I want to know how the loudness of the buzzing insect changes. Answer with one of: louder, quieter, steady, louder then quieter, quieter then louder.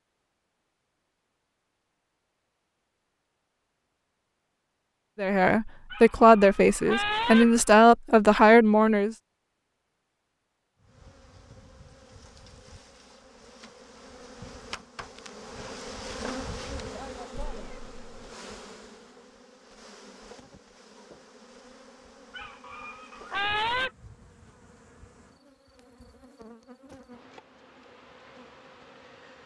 louder then quieter.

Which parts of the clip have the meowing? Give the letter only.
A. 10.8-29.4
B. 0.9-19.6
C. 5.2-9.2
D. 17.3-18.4
D.